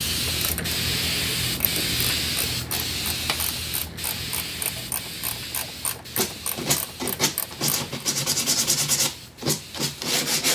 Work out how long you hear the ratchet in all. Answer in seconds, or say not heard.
8 s.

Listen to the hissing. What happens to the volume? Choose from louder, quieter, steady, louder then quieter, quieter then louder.
quieter.